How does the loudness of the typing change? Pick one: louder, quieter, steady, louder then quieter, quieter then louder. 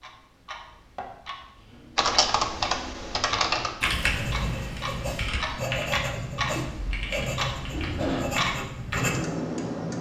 quieter.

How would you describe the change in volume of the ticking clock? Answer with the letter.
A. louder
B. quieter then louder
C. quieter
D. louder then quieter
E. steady
A.